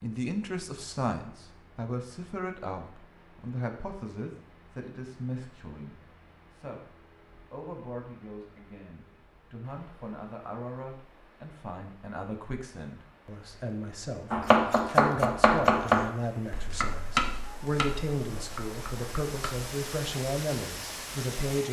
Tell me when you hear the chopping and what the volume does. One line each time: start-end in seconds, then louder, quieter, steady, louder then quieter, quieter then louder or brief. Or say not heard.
14.3-19.7 quieter.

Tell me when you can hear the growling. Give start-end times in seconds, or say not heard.
not heard.